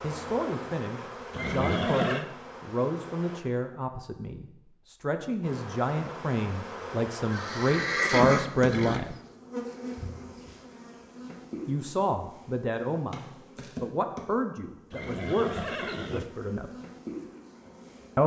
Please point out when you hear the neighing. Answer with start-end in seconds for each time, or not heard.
1.3-2.2, 7.3-9.1, 14.9-16.2.